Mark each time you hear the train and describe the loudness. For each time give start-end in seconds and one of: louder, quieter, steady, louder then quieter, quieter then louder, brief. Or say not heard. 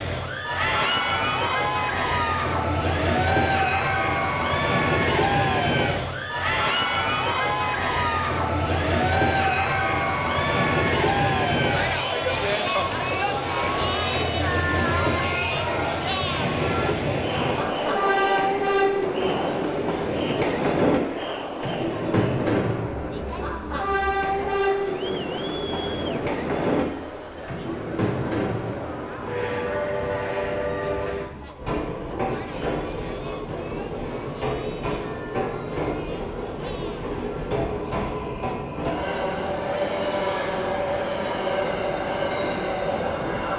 0.0-43.5 steady.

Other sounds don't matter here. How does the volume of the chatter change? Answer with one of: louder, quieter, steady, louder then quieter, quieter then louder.
quieter.